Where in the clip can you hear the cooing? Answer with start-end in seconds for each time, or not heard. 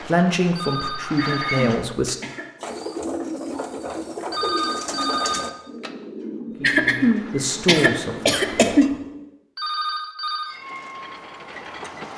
2.5-9.3.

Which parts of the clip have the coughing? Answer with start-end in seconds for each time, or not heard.
1.1-2.5, 6.6-8.9.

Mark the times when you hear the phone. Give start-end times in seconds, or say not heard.
0.6-2.1, 4.3-5.9, 9.6-10.6.